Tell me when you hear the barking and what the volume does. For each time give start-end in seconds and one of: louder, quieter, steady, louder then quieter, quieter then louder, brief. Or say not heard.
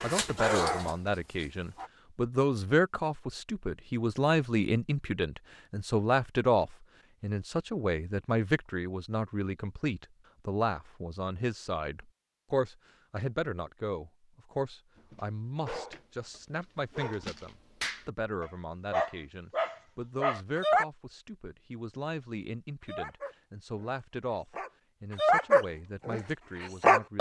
0.0-1.9 brief
14.9-20.9 louder
22.8-27.1 louder then quieter.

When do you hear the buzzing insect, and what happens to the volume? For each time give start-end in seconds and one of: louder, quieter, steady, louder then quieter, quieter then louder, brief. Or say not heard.
not heard.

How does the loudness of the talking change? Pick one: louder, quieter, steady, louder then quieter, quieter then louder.
quieter.